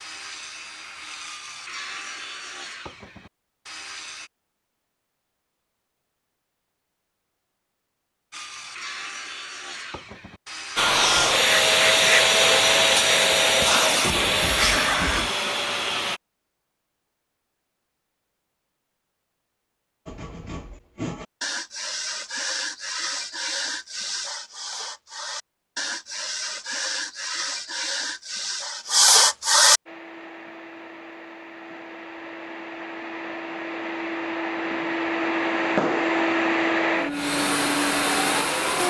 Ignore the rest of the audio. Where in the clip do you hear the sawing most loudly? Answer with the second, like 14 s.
29 s.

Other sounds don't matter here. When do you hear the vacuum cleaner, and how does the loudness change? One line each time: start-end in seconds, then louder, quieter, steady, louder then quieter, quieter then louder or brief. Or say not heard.
10.8-16.2 quieter
29.9-38.8 louder.